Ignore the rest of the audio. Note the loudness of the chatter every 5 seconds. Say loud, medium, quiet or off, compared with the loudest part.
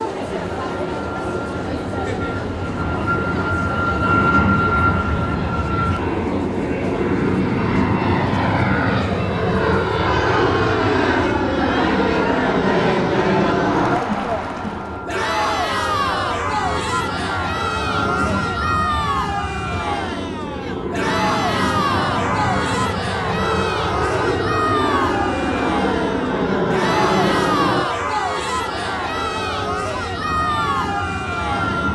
medium, medium, loud, loud, loud, loud, loud.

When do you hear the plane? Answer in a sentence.
The plane can be heard from 0.2 to 31.8 s.